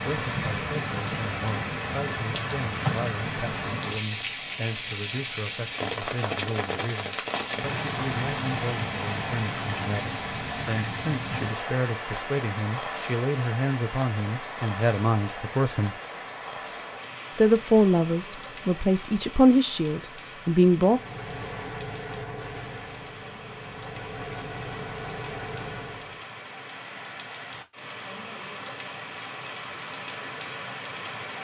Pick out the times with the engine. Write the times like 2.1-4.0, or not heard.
20.7-26.2.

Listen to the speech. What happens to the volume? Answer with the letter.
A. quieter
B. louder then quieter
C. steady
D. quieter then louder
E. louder
E.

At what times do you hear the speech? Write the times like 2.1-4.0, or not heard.
0.0-15.9, 17.4-21.0.